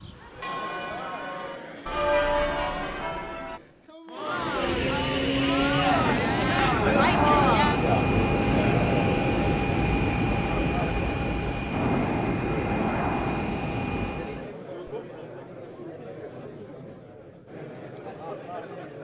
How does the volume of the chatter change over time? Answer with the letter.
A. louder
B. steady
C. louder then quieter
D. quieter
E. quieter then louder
C.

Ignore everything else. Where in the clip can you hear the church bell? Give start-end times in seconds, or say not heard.
0.0-3.6.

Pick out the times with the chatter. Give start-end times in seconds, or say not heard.
0.1-18.9.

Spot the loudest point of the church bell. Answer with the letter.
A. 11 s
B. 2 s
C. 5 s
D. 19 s
B.